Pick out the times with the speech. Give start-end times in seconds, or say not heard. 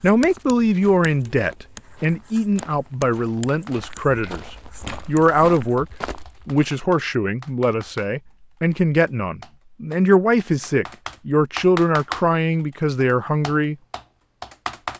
0.0-5.8, 6.5-13.8.